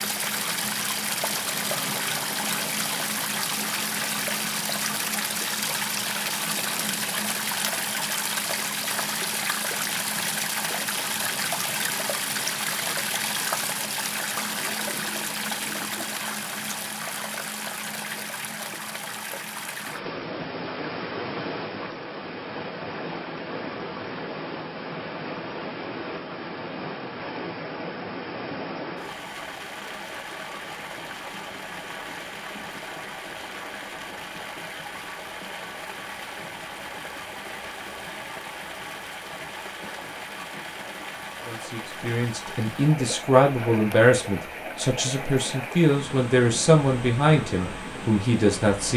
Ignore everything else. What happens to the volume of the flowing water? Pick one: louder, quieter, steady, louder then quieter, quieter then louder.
quieter.